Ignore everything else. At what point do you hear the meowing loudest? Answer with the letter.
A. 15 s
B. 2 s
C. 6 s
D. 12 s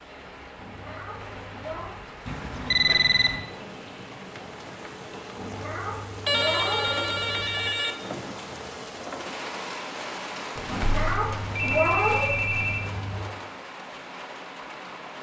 D.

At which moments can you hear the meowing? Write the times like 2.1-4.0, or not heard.
0.6-2.0, 5.3-7.8, 10.7-13.2.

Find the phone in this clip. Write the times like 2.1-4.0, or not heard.
2.2-3.4, 6.2-8.0, 10.6-12.8.